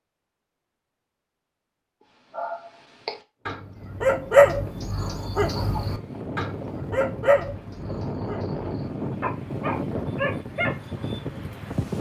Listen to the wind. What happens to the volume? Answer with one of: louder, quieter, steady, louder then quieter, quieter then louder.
louder.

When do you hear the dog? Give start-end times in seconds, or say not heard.
2.3-10.7.